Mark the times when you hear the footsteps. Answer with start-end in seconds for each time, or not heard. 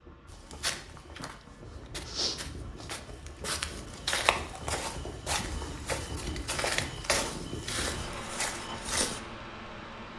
0.2-9.2.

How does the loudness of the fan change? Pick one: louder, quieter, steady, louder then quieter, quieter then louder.
louder.